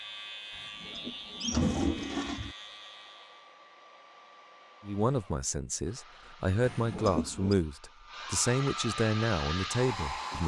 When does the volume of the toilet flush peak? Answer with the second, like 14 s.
2 s.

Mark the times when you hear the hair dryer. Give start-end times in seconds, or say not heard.
0.0-10.4.